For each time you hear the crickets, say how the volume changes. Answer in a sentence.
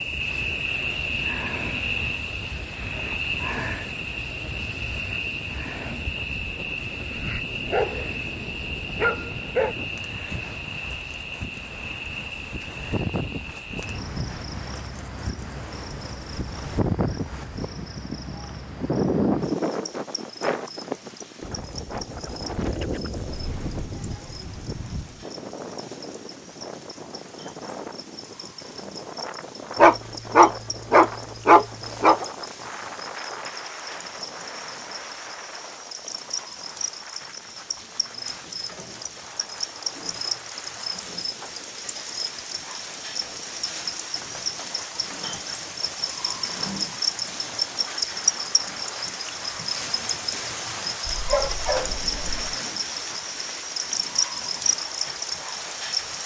The crickets can be heard from 0.0 to 56.2 s, getting quieter then louder.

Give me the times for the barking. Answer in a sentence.
The barking can be heard from 7.2 to 9.8 s, from 29.8 to 32.2 s and from 51.0 to 52.5 s.